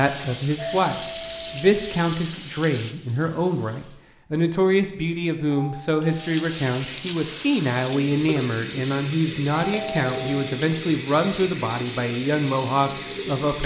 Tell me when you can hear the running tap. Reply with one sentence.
The running tap can be heard from 0.0 to 4.0 s and from 6.0 to 13.6 s.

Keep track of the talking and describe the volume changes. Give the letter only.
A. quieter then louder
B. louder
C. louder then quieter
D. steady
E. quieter
D.